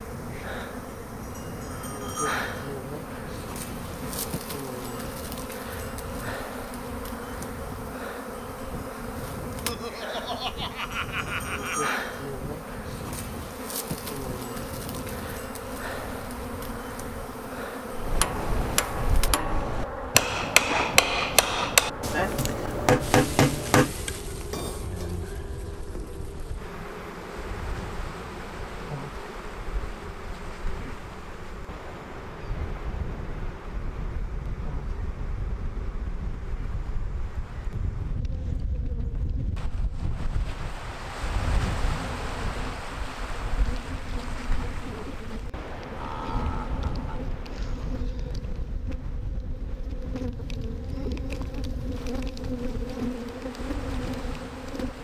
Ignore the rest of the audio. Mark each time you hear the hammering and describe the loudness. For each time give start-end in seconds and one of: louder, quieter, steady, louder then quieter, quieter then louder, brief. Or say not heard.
17.9-25.1 louder.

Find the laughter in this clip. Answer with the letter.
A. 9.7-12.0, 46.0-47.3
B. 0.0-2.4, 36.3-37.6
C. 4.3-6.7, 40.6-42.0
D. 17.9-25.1
A.